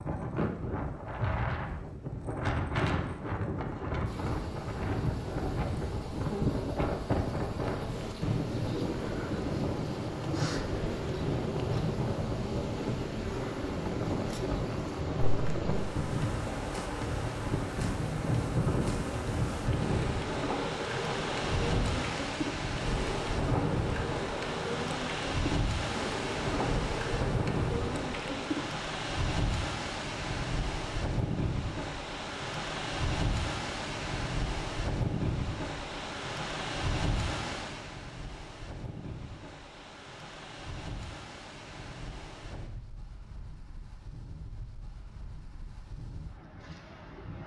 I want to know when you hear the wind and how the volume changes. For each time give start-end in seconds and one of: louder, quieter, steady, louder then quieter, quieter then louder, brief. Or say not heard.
0.0-47.4 quieter.